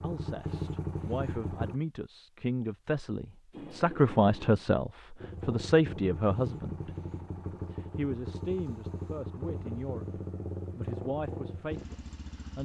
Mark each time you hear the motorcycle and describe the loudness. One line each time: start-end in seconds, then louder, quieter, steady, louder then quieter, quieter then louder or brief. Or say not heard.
0.0-1.8 brief
5.2-12.6 steady.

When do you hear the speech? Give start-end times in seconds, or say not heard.
0.0-6.9, 7.7-12.6.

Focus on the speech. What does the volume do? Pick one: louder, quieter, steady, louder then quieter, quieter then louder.
louder then quieter.